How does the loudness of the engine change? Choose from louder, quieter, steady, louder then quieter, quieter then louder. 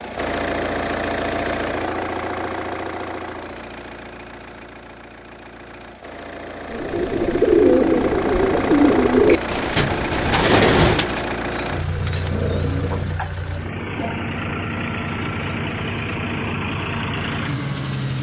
quieter then louder.